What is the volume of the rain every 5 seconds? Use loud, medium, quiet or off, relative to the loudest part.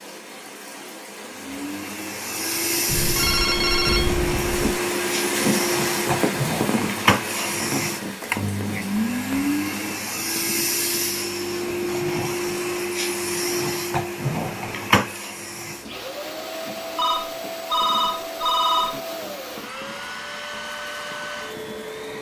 medium, loud, medium, quiet, quiet.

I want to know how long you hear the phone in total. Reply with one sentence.
The phone can be heard for 4 seconds in total.